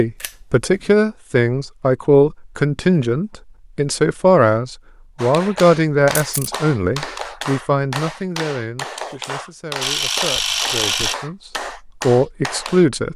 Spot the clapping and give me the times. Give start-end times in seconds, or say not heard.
5.2-12.8.